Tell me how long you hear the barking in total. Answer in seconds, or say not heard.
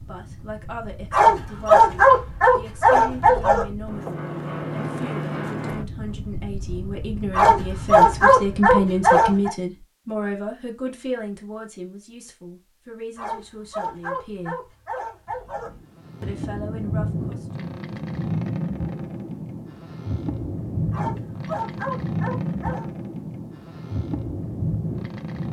9 s.